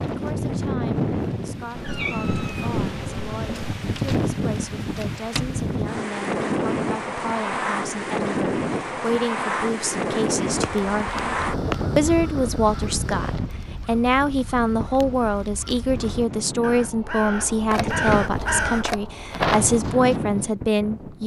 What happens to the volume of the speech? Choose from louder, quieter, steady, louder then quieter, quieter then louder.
louder.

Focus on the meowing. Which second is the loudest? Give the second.
18 s.